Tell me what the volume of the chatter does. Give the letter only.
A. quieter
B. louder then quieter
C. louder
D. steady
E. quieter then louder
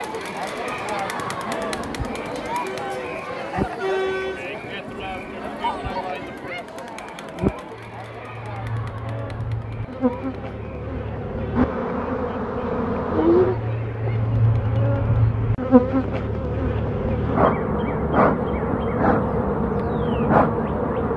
A.